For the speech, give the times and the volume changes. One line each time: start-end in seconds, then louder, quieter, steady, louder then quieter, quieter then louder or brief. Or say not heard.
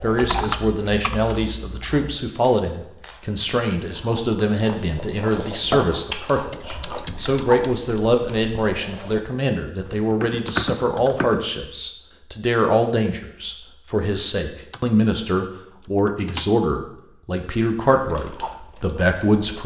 0.0-19.6 steady.